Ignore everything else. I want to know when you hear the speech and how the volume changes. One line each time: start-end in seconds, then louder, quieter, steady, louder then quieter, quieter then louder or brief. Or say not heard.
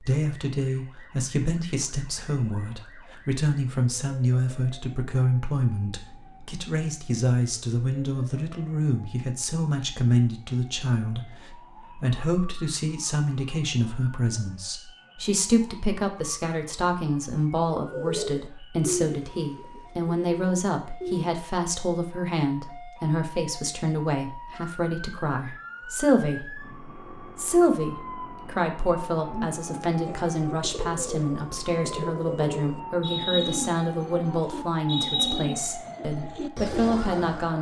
0.0-37.5 steady.